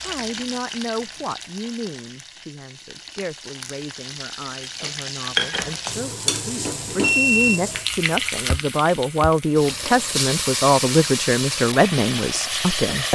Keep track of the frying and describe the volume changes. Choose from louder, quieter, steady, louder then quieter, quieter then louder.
louder.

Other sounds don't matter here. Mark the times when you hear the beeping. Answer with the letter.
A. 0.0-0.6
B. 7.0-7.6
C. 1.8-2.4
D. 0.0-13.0
B.